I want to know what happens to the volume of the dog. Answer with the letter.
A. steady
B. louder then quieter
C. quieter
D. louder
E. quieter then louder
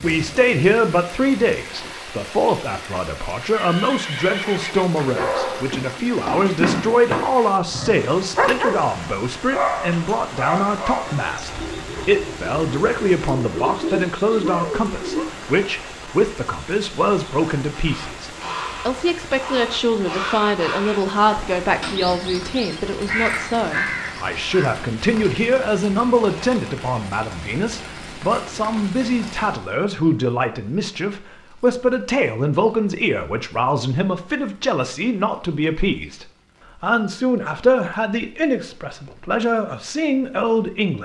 E.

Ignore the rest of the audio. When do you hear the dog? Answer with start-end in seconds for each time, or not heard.
5.0-15.2.